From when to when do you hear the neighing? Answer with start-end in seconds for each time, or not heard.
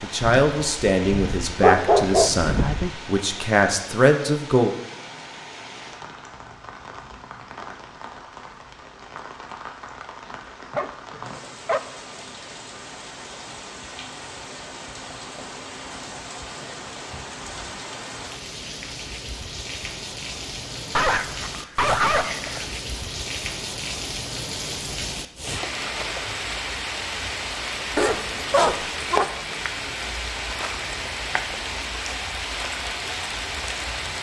not heard.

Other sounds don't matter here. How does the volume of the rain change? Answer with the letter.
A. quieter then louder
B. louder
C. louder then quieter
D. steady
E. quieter
B.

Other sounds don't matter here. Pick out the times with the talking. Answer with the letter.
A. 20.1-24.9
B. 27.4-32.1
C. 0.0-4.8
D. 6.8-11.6
C.